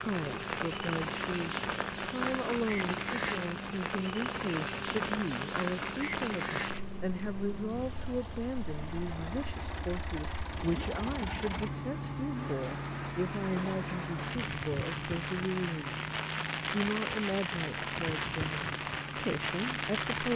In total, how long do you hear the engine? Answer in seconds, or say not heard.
20 s.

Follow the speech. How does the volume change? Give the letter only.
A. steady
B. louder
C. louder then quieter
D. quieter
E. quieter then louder
A.